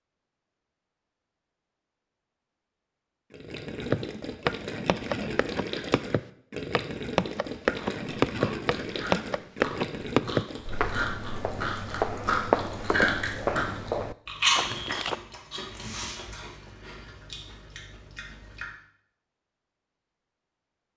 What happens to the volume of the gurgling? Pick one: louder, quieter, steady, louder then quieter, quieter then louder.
steady.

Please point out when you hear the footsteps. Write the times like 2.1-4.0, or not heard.
3.9-15.2.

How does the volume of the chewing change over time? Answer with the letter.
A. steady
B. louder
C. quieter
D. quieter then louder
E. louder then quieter
E.